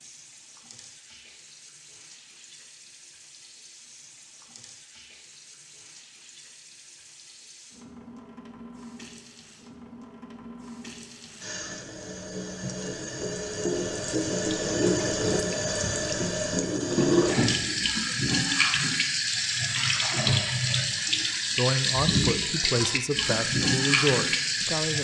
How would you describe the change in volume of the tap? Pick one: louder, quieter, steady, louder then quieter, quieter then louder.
louder.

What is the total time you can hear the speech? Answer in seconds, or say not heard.
3 s.